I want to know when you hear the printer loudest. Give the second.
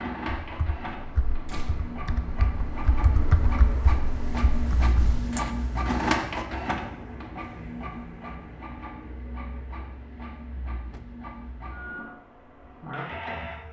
6 s.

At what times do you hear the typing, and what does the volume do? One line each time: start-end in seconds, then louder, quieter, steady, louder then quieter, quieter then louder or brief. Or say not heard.
0.4-5.5 louder then quieter.